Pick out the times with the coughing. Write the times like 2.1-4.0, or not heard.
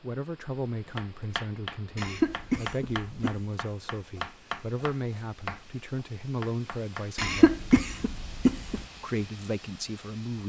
1.9-3.4, 7.2-8.8.